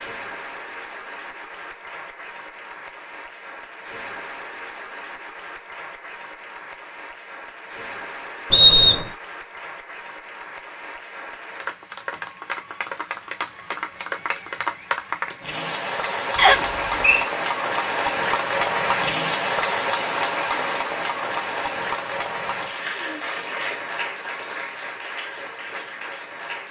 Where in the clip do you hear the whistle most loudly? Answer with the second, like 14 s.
9 s.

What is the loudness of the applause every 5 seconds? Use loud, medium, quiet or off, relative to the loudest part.
quiet, quiet, medium, loud, loud, medium.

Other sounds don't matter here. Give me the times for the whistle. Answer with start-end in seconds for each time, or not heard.
8.5-9.1, 16.4-17.2.